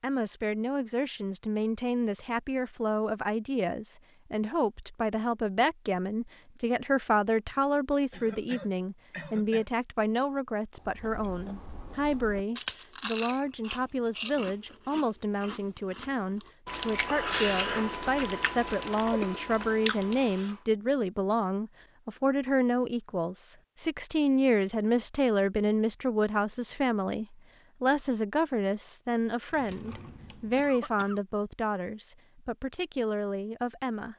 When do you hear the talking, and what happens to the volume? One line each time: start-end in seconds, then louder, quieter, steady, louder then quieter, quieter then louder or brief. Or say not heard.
0.0-34.1 steady.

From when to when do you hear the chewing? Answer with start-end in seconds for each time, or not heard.
10.8-20.6.